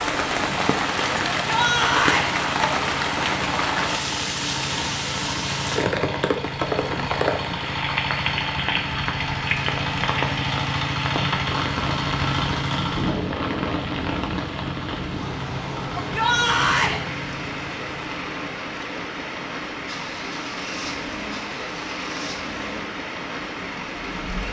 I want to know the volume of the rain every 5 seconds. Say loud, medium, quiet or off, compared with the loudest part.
loud, loud, medium, medium, medium.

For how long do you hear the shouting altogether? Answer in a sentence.
The shouting can be heard for 2 seconds in total.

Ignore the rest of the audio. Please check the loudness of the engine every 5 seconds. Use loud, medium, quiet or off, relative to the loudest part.
medium, loud, loud, medium, medium.